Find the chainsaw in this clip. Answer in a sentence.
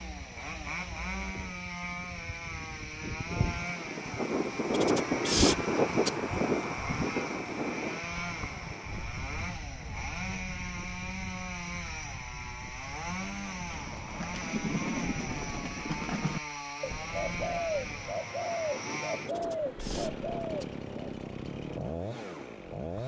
You can hear the chainsaw from 0.0 to 23.0 s.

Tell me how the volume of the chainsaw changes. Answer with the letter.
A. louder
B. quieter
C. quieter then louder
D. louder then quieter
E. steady
E.